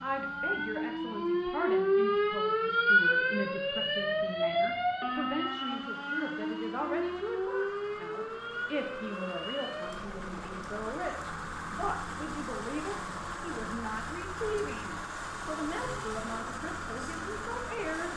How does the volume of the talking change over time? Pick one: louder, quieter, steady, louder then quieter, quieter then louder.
steady.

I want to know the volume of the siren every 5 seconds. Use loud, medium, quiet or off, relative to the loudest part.
loud, medium, quiet, quiet.